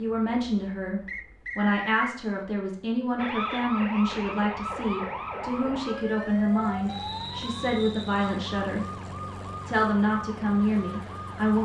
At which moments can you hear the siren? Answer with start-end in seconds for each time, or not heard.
3.1-11.6.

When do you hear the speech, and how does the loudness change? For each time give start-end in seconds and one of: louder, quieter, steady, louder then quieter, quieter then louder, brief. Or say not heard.
0.0-9.0 steady
9.7-11.6 brief.